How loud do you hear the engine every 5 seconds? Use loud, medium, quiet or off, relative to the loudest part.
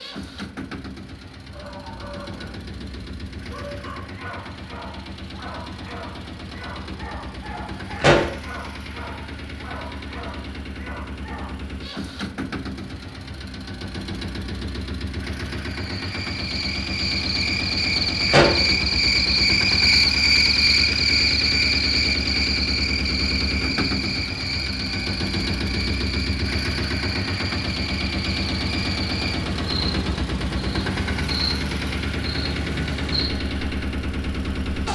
medium, medium, medium, loud, loud, loud, loud.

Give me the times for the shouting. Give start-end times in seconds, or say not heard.
not heard.